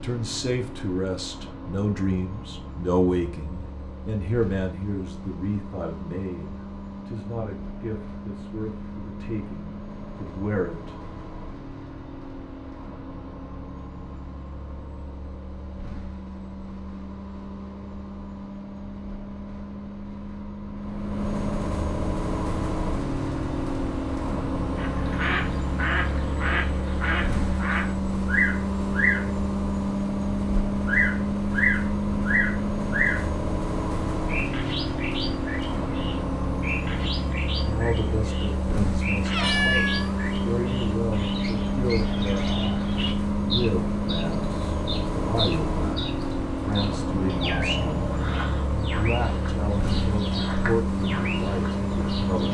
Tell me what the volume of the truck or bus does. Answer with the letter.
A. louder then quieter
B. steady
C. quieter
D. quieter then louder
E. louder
E.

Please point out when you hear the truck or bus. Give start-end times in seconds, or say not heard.
0.0-52.5.